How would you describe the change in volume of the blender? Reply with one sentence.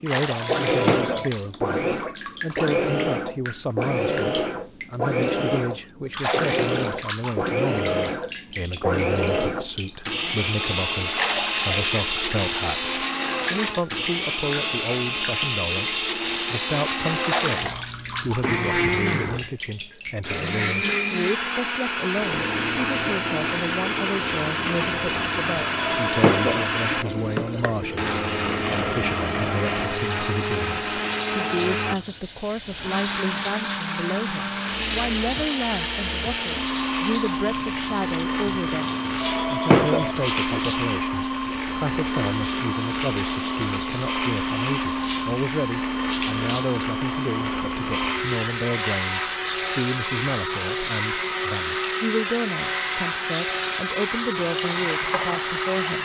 The volume of the blender stays about the same.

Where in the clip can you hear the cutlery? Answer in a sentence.
The cutlery can't be heard in this clip.